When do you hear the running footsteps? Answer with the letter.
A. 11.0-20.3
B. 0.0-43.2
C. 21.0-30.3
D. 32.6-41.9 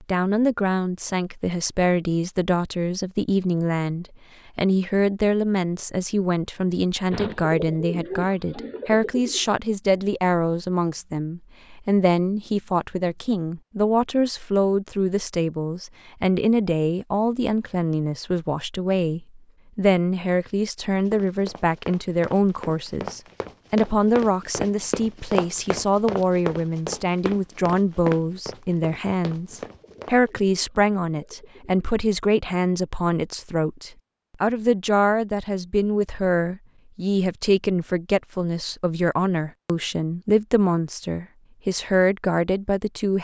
C.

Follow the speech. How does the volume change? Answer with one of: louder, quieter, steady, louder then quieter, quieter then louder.
steady.